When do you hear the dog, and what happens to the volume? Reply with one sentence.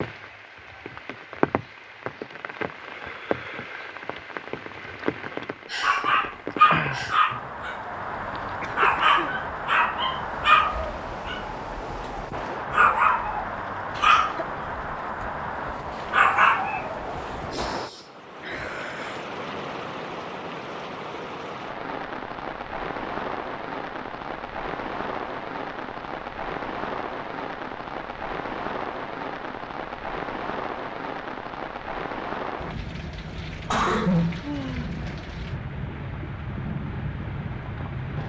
You can hear the dog from 5.8 to 17.6 s, getting quieter then louder.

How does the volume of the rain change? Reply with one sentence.
The loudness of the rain stays about the same.